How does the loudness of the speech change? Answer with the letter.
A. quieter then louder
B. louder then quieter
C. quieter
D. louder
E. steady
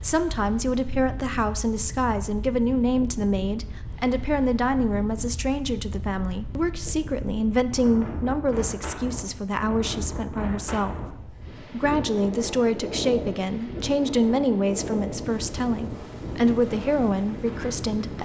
E.